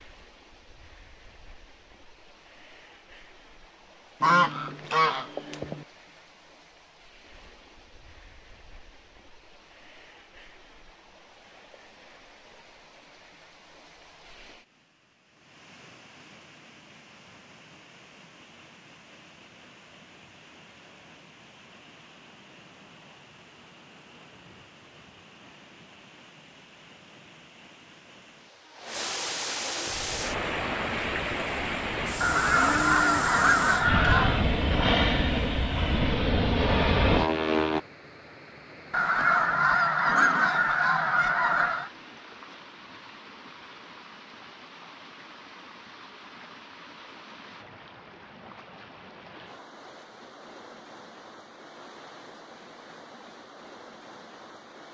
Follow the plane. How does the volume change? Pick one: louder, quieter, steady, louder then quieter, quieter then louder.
louder.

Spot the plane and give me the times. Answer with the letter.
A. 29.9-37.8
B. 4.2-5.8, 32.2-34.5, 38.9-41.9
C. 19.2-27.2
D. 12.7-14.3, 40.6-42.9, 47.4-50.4
A.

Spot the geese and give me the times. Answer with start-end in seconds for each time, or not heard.
4.2-5.8, 32.2-34.5, 38.9-41.9.